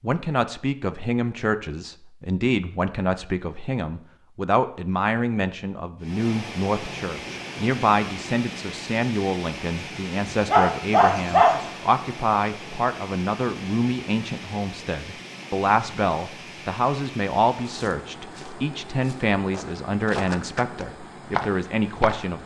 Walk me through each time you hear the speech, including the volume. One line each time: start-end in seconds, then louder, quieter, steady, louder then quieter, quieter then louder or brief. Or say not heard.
0.0-22.4 steady.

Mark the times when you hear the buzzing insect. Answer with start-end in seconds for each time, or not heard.
not heard.